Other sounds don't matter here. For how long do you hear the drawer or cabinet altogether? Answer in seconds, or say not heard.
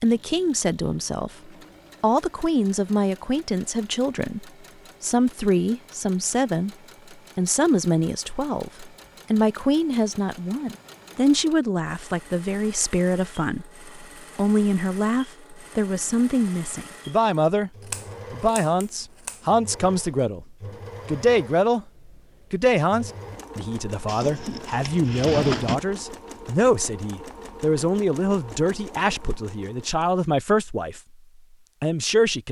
2 s.